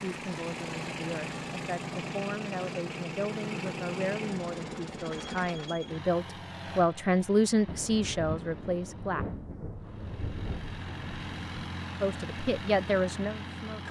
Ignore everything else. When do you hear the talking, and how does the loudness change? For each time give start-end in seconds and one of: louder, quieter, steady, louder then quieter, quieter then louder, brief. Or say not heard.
0.0-9.2 louder
12.0-13.8 brief.